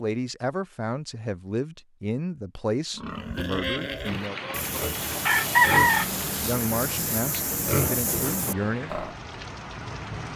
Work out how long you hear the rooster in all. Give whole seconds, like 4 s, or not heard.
2 s.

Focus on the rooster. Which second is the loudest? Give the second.
6 s.